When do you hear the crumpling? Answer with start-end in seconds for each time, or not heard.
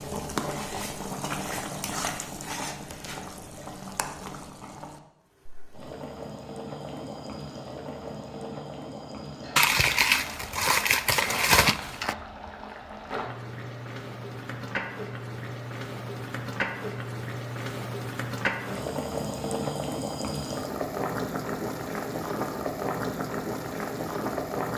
9.6-12.2.